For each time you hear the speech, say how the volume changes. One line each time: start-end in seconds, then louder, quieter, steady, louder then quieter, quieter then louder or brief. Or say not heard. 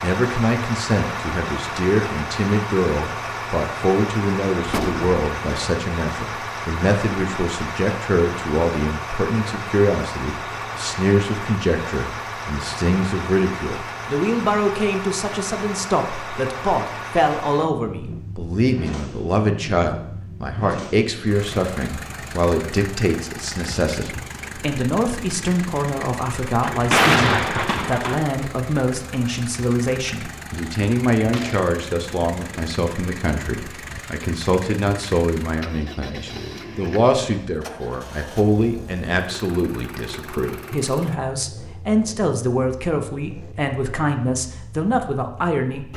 0.0-45.9 steady.